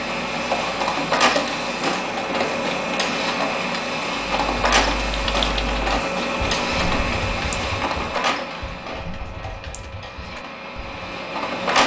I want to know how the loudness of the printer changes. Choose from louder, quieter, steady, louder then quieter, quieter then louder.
quieter.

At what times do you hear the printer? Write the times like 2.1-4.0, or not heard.
0.0-11.8.